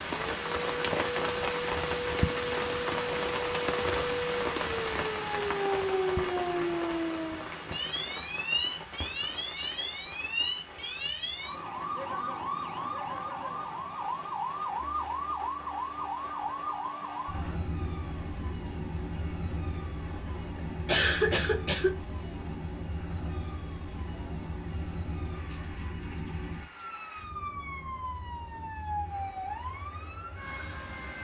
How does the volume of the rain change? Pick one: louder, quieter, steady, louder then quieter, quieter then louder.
quieter.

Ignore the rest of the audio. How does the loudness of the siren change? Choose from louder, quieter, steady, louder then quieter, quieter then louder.
quieter.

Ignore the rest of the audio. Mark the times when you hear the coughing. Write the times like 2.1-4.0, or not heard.
20.9-21.9.